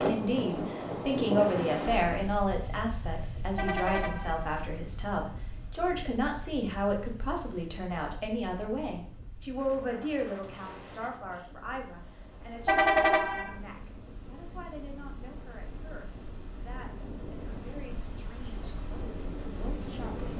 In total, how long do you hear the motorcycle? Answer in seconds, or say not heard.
not heard.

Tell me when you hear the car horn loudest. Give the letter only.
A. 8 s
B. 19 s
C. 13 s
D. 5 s
C.